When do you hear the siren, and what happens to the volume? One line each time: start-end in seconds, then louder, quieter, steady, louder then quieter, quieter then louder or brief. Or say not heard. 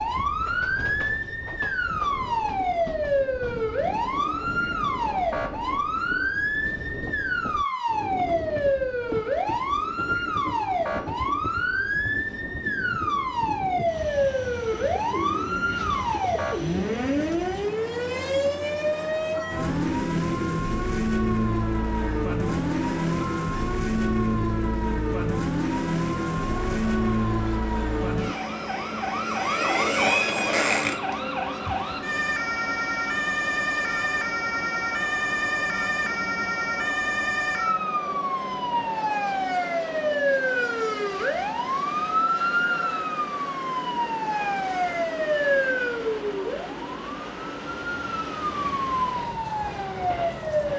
0.0-50.7 steady.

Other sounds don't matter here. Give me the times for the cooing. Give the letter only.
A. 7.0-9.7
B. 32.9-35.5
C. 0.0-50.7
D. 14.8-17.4
D.